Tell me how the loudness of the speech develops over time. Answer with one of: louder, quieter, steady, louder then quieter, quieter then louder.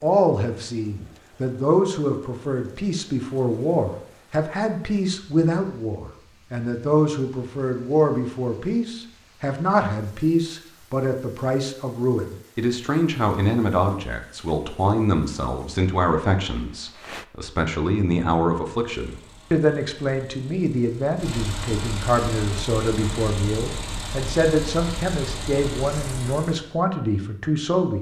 steady.